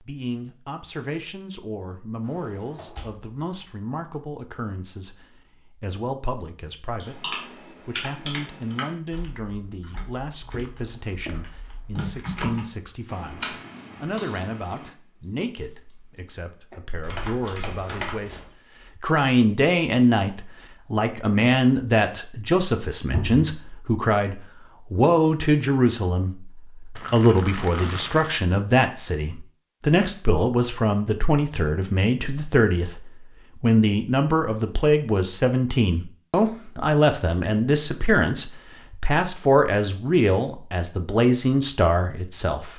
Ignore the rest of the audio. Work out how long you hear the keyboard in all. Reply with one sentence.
You can hear the keyboard for 10 seconds altogether.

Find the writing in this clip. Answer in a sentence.
You can't hear the writing here.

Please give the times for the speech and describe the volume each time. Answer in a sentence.
You can hear the speech from 0.0 to 42.7 s, getting louder.